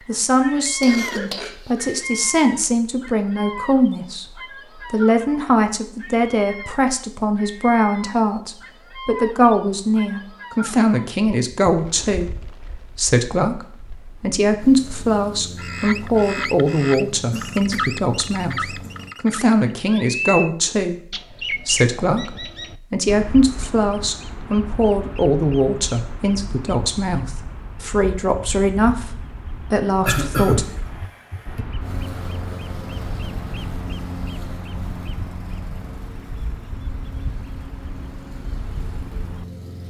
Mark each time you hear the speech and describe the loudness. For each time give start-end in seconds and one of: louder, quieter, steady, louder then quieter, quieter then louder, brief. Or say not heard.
0.1-30.6 steady.